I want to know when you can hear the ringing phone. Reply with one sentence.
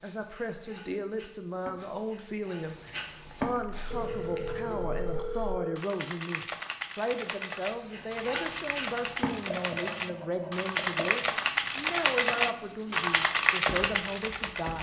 You can hear the ringing phone from 3.9 to 5.8 s.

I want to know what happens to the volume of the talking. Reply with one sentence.
The loudness of the talking stays about the same.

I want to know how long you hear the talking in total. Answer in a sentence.
The talking can be heard for 15 seconds in total.